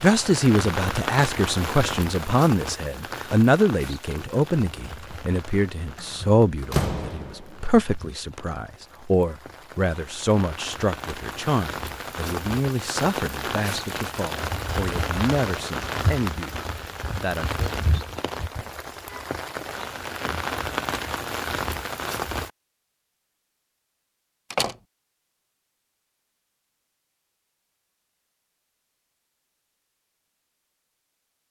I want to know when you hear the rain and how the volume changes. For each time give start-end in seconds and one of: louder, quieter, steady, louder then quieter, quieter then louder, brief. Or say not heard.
0.0-22.5 quieter then louder.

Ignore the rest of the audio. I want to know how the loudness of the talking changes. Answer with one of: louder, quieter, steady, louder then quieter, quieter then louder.
quieter.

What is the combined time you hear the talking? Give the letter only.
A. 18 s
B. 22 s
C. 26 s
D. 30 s
A.